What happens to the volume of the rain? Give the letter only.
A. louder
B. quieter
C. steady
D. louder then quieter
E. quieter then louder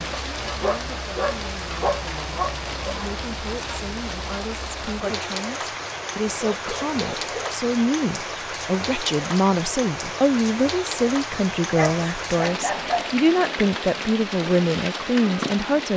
C.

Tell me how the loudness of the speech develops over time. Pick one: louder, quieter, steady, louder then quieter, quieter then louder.
louder.